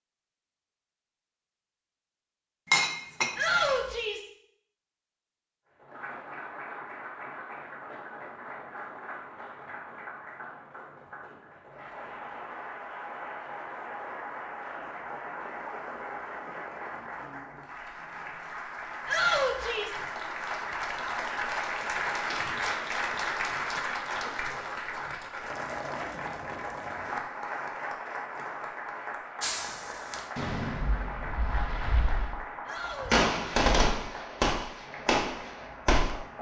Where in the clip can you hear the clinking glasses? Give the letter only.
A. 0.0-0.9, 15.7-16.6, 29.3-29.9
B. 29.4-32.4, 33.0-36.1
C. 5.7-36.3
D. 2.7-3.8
D.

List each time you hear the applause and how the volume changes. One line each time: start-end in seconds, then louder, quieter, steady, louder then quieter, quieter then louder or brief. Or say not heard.
5.7-36.3 louder then quieter.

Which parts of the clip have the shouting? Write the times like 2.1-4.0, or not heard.
3.4-4.3, 19.1-20.0, 32.6-33.2.